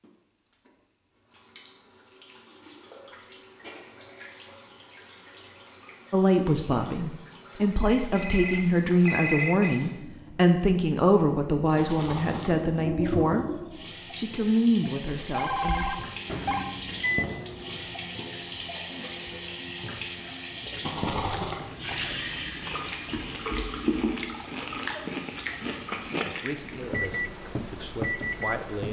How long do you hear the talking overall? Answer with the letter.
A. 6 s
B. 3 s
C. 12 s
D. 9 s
C.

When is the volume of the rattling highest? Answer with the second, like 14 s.
21 s.